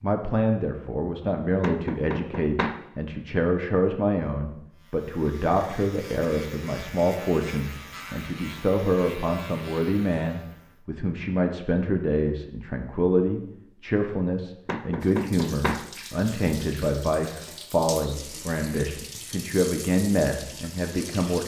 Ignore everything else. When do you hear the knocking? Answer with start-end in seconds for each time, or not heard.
1.6-2.8, 14.7-15.8.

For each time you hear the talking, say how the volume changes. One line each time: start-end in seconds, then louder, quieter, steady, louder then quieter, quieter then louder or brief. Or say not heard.
0.0-21.4 steady.